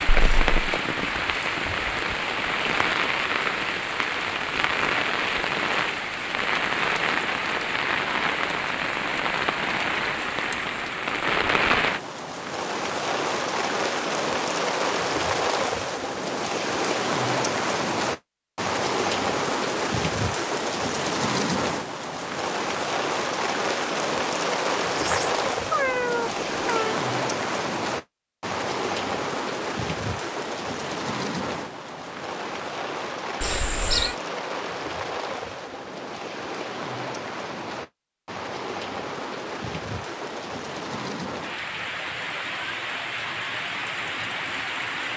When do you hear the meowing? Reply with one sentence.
The meowing can be heard from 0.1 to 0.6 s, from 24.9 to 27.0 s and from 33.4 to 34.1 s.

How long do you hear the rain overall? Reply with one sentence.
You can hear the rain for 45 seconds altogether.